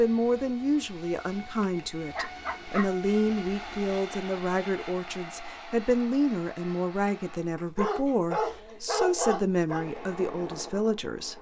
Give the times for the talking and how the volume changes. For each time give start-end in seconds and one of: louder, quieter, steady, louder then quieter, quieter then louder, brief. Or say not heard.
0.0-11.3 steady.